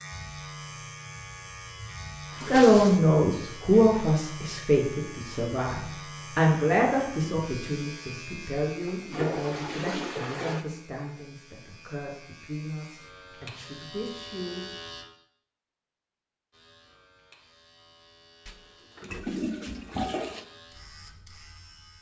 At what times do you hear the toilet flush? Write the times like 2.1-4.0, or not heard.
2.3-3.0, 8.7-10.7, 18.4-20.4.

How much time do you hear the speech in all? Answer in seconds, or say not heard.
12 s.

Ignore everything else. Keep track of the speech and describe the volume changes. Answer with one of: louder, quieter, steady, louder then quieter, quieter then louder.
quieter.